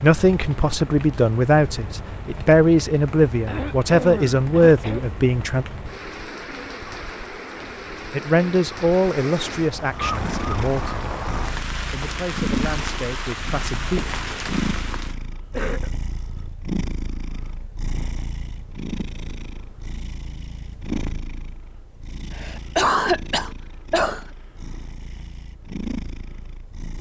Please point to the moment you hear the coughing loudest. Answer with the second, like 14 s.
23 s.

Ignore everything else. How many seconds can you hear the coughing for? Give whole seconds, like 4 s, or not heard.
4 s.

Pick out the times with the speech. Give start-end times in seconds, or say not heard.
0.0-5.7, 8.1-11.1, 11.9-14.1.